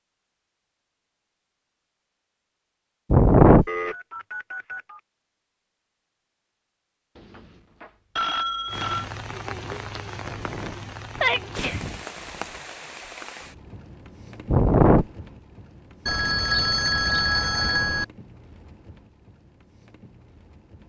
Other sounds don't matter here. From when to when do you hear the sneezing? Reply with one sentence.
You can hear the sneezing from 3.1 to 3.6 s, from 10.2 to 12.1 s and from 14.5 to 15.1 s.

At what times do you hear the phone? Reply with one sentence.
You can hear the phone from 3.6 to 5.0 s, from 7.2 to 9.1 s and from 16.1 to 18.1 s.